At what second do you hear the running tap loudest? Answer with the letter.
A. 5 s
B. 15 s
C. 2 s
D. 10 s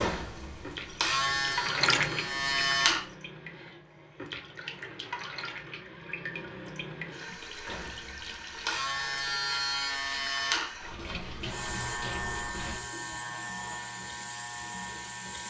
C.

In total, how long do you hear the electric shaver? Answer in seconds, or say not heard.
11 s.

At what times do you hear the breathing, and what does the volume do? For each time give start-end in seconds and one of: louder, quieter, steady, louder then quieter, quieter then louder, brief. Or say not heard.
not heard.